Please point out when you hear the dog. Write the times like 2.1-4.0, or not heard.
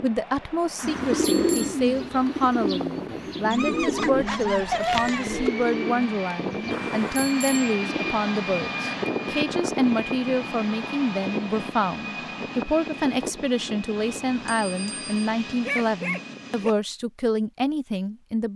3.5-5.5, 15.7-16.7.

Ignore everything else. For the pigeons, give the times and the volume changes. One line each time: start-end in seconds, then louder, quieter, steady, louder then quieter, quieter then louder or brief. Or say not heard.
0.8-8.2 quieter.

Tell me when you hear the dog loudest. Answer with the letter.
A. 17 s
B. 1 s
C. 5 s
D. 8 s
C.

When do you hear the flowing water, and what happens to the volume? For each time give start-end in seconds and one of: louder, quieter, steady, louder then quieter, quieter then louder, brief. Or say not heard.
not heard.